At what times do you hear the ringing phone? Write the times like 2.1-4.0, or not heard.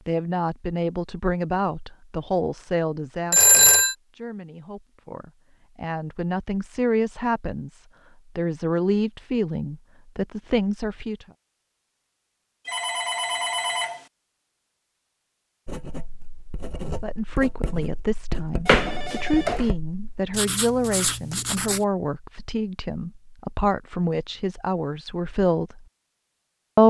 3.3-4.0, 12.7-14.1, 18.6-19.6.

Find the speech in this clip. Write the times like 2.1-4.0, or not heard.
0.1-11.2, 17.0-25.9.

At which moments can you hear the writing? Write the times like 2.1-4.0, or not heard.
15.7-21.9.